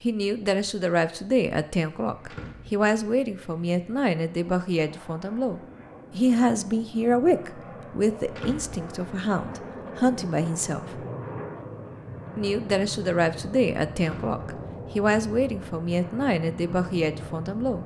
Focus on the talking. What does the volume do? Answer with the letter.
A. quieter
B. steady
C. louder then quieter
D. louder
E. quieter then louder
B.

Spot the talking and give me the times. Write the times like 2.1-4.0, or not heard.
0.0-11.0, 12.3-17.8.